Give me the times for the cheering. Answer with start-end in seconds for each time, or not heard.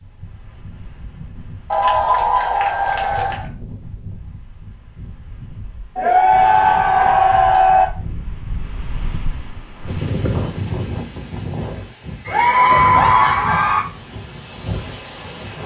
1.7-3.5, 6.0-7.8, 12.2-13.8.